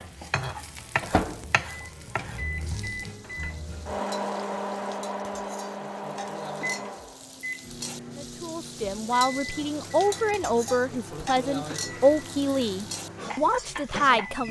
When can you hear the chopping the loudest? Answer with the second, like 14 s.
1 s.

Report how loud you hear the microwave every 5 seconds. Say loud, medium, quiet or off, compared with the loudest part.
loud, loud, medium.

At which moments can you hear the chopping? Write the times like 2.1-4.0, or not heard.
0.3-2.9.